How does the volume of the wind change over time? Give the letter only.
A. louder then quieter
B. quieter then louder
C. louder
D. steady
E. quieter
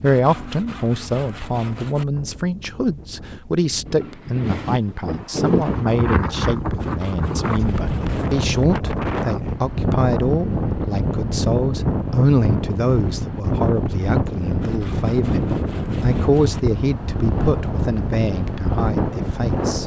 C.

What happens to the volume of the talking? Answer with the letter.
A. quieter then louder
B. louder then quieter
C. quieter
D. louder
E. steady
E.